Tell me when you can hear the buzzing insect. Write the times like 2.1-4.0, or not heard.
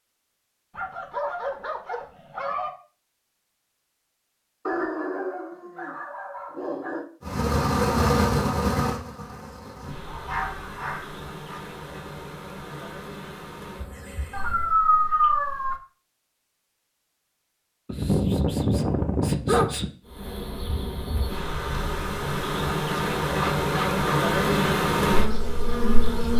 7.2-14.8, 20.1-26.3.